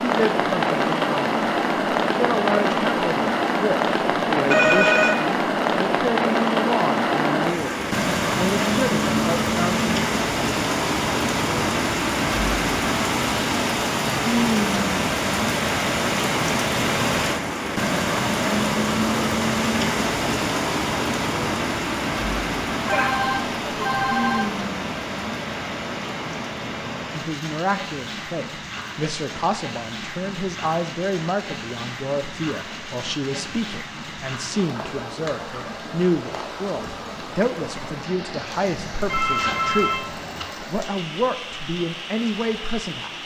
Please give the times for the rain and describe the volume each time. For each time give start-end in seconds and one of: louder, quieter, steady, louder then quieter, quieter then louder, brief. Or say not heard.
0.0-43.2 quieter.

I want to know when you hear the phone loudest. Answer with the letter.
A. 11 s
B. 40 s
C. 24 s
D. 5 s
D.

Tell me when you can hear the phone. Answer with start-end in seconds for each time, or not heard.
4.5-5.2, 22.9-24.4, 39.0-40.5.